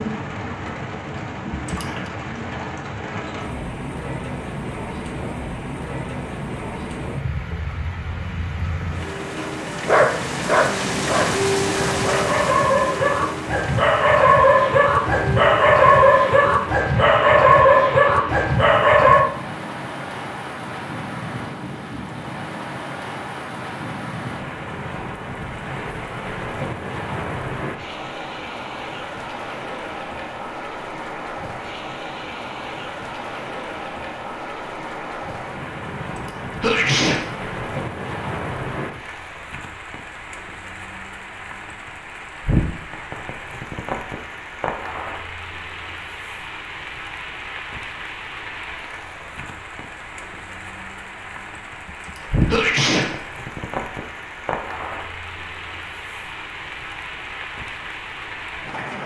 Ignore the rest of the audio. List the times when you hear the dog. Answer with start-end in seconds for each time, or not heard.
9.3-19.2.